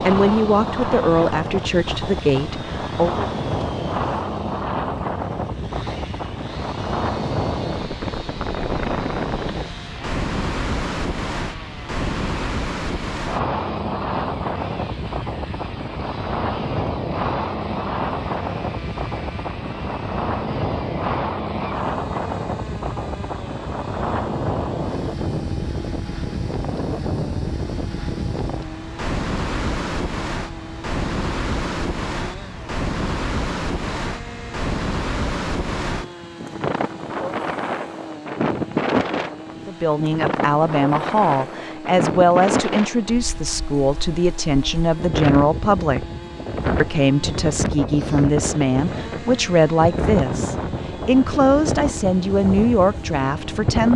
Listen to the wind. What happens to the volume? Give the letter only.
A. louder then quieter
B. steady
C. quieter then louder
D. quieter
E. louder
B.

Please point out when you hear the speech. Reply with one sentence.
The speech can be heard from 0.0 to 3.2 s, from 39.6 to 46.0 s and from 46.8 to 53.9 s.